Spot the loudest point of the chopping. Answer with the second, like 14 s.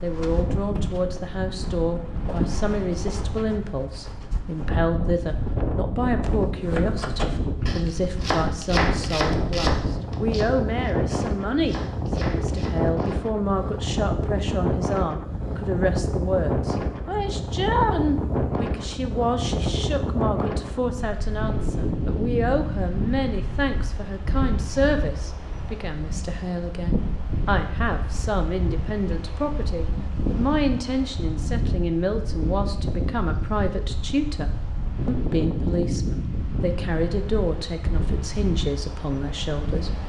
9 s.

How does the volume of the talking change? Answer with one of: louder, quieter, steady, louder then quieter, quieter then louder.
steady.